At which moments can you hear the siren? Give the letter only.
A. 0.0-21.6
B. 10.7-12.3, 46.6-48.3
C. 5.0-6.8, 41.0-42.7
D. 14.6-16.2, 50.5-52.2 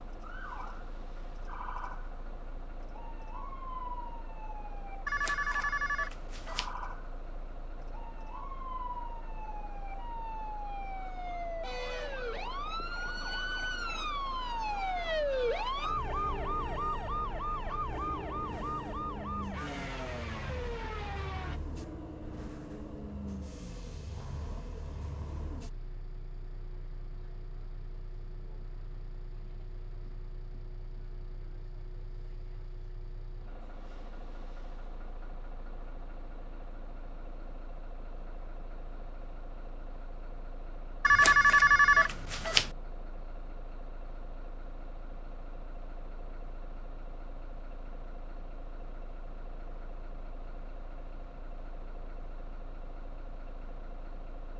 A.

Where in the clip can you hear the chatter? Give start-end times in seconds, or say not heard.
not heard.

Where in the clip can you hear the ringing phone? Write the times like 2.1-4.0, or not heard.
5.0-6.8, 41.0-42.7.